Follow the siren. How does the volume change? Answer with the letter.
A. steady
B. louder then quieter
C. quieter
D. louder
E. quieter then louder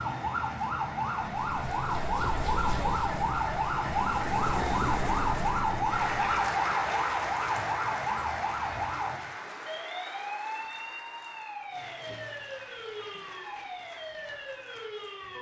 C.